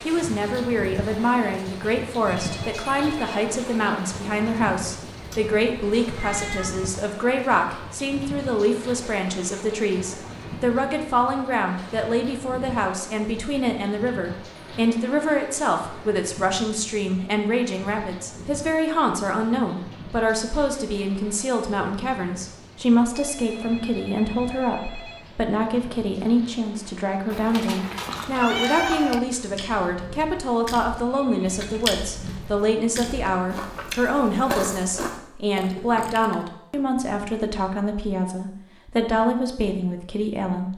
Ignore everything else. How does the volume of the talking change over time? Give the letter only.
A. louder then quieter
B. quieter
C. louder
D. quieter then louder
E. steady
E.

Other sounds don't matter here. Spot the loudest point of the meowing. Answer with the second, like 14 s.
29 s.